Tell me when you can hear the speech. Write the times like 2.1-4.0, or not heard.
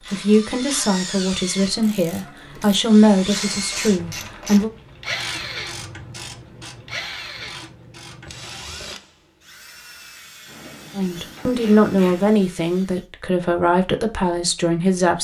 0.1-4.7, 10.9-15.2.